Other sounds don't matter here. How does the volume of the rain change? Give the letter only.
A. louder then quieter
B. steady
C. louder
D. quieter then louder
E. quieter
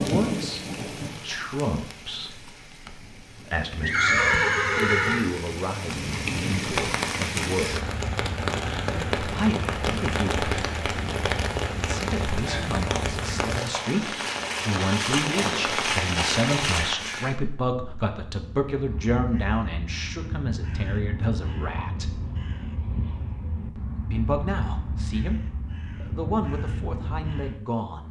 C.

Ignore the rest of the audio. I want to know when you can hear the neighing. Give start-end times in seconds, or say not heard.
3.8-5.2.